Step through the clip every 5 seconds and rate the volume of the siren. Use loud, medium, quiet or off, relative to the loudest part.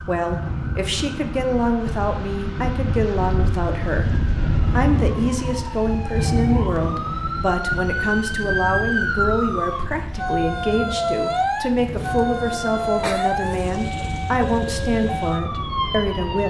quiet, loud, loud, loud.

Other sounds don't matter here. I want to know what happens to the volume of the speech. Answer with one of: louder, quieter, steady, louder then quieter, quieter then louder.
steady.